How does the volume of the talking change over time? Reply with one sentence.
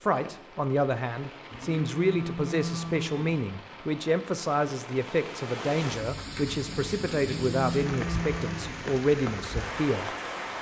The volume of the talking stays about the same.